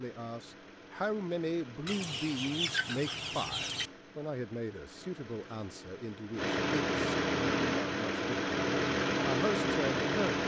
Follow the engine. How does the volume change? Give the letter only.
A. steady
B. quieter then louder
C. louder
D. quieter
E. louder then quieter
C.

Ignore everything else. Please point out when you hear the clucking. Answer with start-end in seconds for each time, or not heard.
1.9-3.9.